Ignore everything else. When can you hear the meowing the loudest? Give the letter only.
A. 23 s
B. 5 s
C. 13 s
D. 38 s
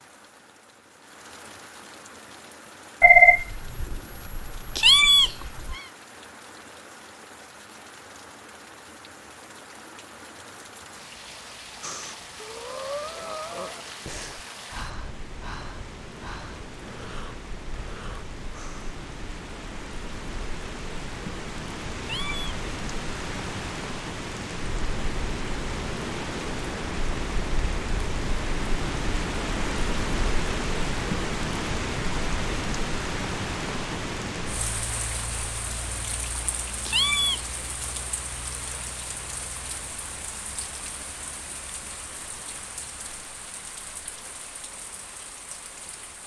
B.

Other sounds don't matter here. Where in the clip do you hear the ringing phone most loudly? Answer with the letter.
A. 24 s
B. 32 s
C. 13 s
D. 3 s
D.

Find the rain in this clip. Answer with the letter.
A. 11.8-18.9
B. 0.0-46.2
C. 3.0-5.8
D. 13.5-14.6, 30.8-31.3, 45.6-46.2
B.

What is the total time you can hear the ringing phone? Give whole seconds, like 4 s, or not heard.
3 s.